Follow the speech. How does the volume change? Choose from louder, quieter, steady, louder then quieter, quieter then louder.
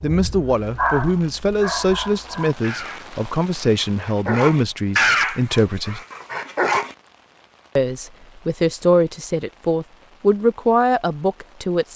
steady.